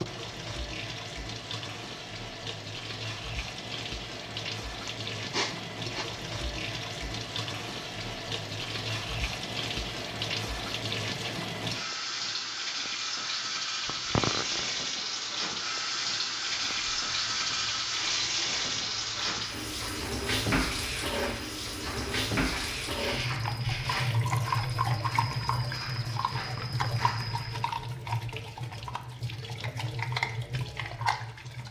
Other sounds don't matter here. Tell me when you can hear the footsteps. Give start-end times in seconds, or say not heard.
16.4-27.6.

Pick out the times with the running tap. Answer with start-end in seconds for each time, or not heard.
0.0-31.6.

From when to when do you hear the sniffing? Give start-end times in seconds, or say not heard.
4.8-6.0, 13.8-14.7, 22.9-24.2.